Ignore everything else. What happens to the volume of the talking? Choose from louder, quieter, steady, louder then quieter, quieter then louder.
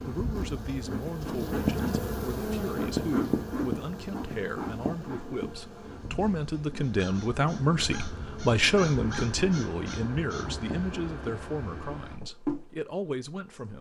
louder then quieter.